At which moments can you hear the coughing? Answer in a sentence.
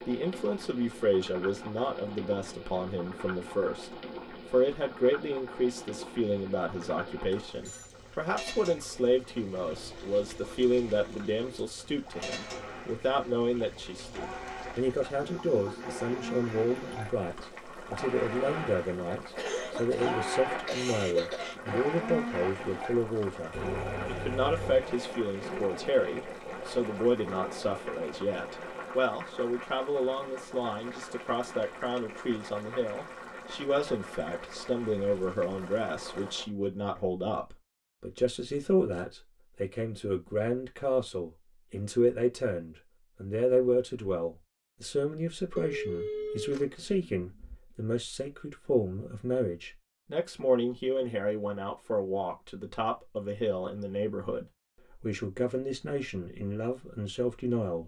The coughing can be heard from 19.4 to 21.6 s.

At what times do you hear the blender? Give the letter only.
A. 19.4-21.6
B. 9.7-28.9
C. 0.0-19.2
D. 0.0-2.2
B.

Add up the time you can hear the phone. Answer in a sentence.
The phone can be heard for 4 seconds in total.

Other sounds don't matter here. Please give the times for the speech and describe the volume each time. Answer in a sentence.
The speech can be heard from 0.1 to 57.8 s, at a steady volume.